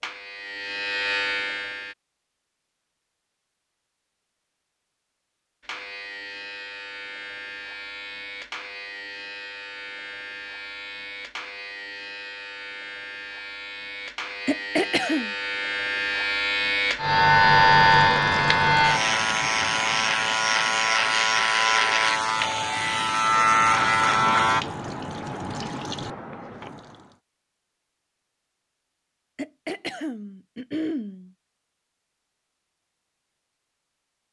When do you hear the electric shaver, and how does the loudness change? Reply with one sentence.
You can hear the electric shaver briefly from 0.0 to 1.9 s; and from 5.6 to 24.6 s, getting louder.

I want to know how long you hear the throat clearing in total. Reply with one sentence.
The throat clearing can be heard for 3 seconds in total.